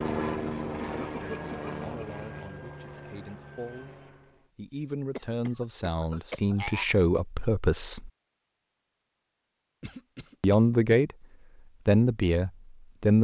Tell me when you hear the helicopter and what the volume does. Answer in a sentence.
You can hear the helicopter from 0.0 to 4.5 s, getting quieter.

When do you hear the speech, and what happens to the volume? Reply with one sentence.
The speech can be heard from 0.2 to 8.1 s, getting louder; briefly from 10.4 to 11.2 s; and briefly from 11.8 to 13.1 s.